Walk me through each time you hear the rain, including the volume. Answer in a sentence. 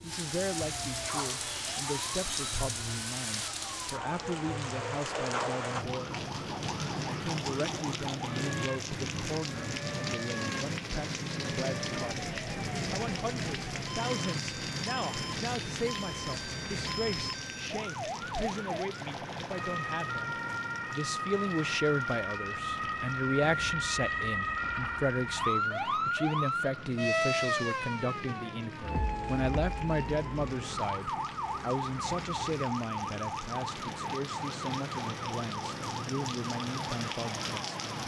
The rain can be heard from 0.0 to 38.0 s, getting quieter then louder.